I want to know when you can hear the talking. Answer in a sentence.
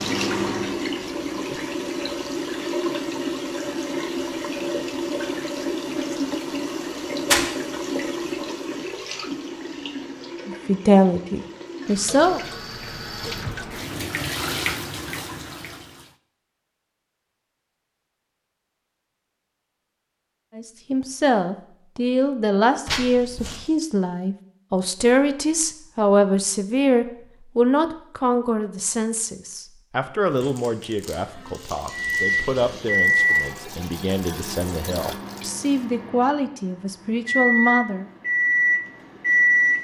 You can hear the talking from 10.4 to 12.4 s and from 20.6 to 38.1 s.